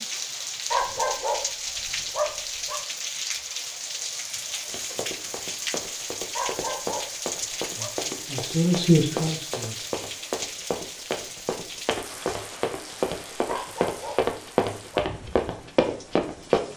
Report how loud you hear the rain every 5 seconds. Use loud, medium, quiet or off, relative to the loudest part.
loud, loud, medium, quiet.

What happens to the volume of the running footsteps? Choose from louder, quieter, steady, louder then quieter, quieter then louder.
louder.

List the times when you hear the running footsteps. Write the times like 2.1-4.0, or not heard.
4.7-16.6.